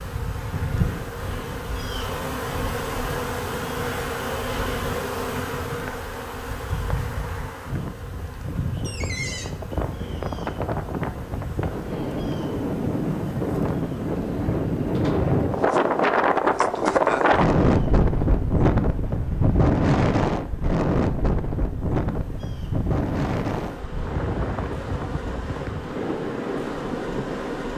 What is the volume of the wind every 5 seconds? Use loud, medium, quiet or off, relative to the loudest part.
quiet, quiet, medium, loud, medium, medium.